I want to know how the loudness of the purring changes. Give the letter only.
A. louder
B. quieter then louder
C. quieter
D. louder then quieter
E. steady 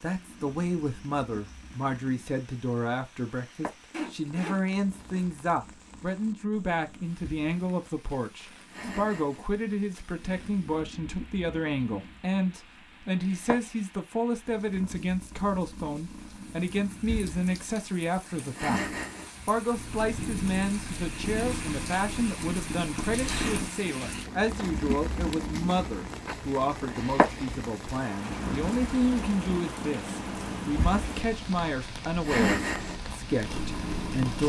A.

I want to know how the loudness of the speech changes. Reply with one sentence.
The volume of the speech stays about the same.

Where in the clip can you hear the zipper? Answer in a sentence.
You can hear the zipper from 3.9 to 5.3 s.